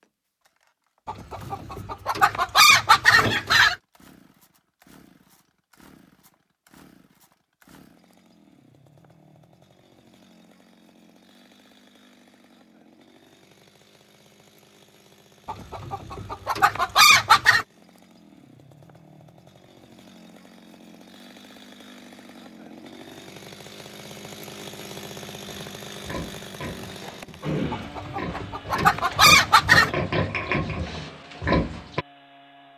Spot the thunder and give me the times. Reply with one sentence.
You can't hear the thunder here.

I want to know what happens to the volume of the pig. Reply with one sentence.
The volume of the pig goes up.